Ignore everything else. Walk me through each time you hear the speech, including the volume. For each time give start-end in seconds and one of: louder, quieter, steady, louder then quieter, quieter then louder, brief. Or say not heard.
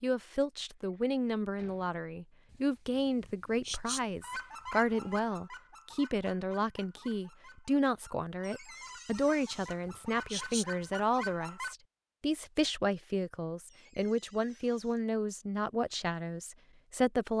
0.0-17.3 steady.